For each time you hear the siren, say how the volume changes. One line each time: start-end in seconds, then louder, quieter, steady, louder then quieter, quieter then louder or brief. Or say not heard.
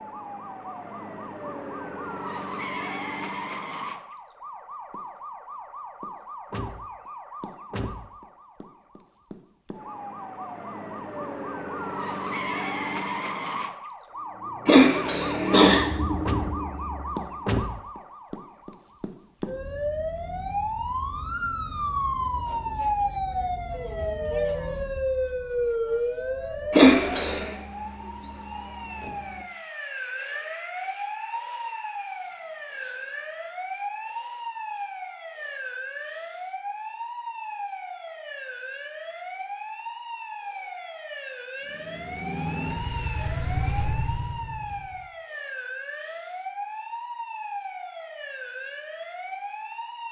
0.0-50.0 louder then quieter.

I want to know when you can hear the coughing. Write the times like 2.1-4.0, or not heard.
14.7-15.8, 26.7-27.5.